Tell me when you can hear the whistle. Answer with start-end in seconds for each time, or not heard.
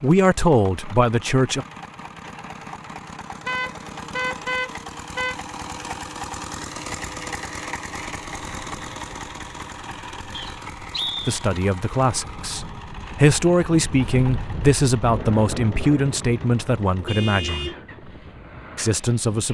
10.3-11.4.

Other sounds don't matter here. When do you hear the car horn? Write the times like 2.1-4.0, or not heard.
3.5-5.3, 17.1-17.8.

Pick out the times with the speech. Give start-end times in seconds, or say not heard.
0.0-1.6, 11.2-17.7, 18.8-19.5.